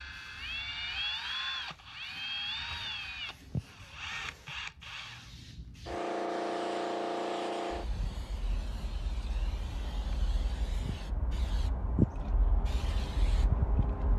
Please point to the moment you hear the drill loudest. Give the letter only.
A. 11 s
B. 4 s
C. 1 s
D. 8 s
C.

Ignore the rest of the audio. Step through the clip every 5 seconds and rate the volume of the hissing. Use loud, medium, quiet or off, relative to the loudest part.
quiet, loud, loud.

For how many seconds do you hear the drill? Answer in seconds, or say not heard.
5 s.